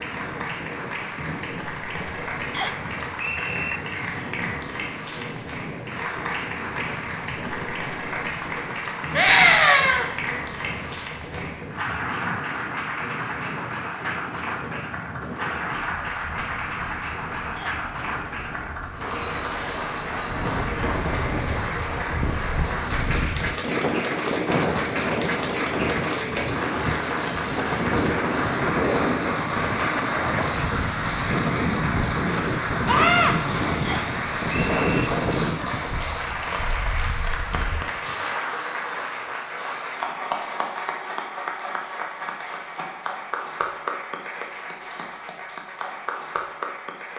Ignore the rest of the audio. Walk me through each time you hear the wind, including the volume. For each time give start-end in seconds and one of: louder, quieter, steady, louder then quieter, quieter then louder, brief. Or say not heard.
0.0-37.9 louder.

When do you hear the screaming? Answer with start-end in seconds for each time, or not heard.
9.2-10.1, 32.9-33.4.